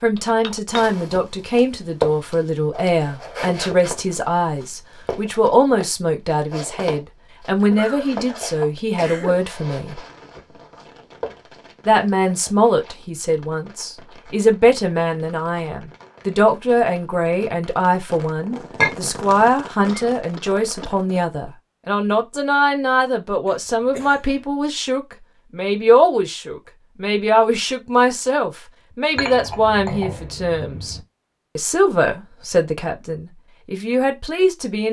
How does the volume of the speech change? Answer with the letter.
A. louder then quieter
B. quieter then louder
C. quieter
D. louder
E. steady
E.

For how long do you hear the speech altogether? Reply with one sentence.
The speech can be heard for 32 seconds in total.